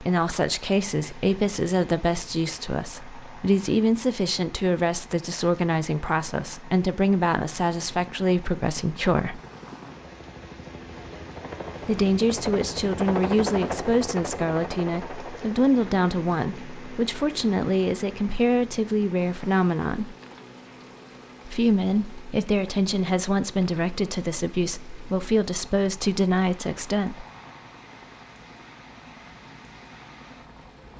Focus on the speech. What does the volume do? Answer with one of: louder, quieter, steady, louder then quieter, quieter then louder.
steady.